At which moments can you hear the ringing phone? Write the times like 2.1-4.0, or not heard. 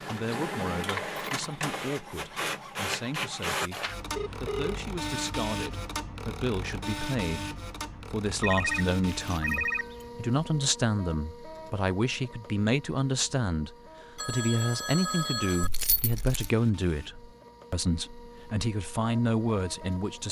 4.2-4.8, 8.4-10.1, 14.2-15.7.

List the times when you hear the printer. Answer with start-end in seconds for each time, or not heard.
0.0-20.2.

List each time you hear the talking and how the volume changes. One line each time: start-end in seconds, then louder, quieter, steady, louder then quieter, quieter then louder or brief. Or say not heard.
0.1-20.2 louder.